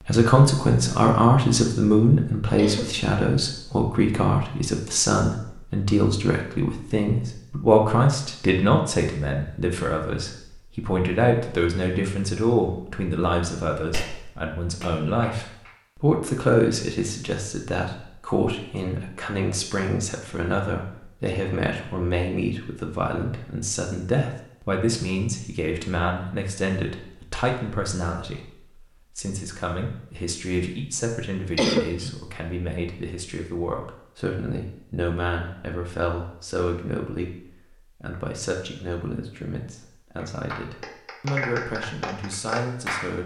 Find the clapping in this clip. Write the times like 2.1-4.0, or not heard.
13.9-15.7, 40.1-43.1.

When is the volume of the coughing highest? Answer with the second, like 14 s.
32 s.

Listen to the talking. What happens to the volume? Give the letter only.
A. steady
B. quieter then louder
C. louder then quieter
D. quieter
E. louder
D.